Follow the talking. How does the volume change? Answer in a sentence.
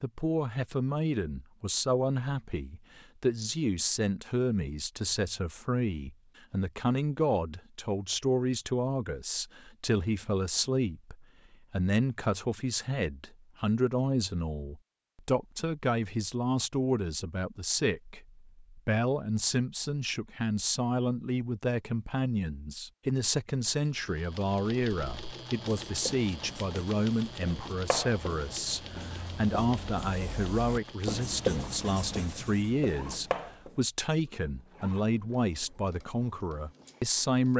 The volume of the talking stays about the same.